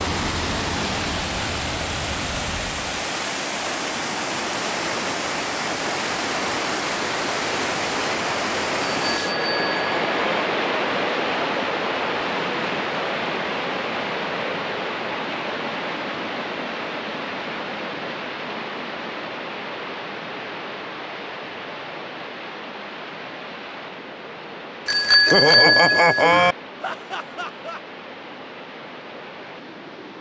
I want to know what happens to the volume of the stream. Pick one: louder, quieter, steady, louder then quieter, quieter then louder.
quieter.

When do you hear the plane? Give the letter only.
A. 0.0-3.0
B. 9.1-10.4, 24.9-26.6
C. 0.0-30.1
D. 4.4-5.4
A.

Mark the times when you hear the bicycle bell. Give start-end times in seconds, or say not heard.
9.1-10.4, 24.9-26.6.